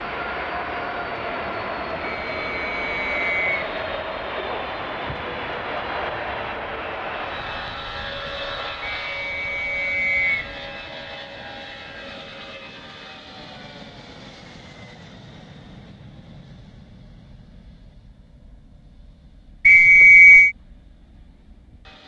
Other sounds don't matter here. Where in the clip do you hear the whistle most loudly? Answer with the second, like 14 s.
20 s.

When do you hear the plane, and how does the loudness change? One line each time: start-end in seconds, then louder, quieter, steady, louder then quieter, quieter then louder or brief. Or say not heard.
0.0-22.0 quieter.